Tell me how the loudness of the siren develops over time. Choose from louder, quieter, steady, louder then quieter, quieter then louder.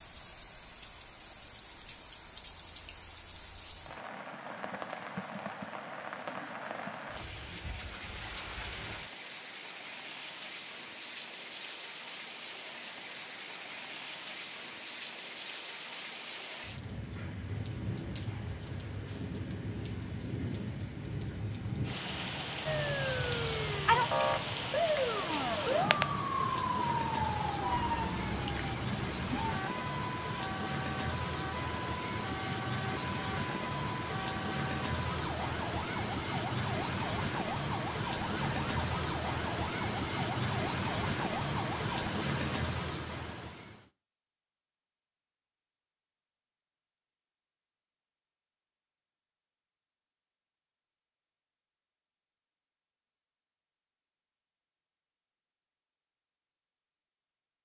quieter.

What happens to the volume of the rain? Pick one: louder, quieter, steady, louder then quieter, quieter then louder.
louder.